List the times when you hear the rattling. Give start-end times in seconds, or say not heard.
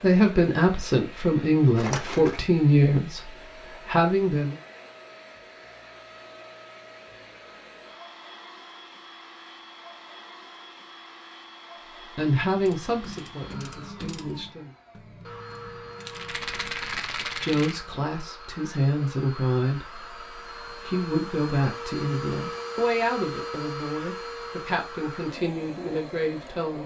1.8-2.4, 16.1-17.9.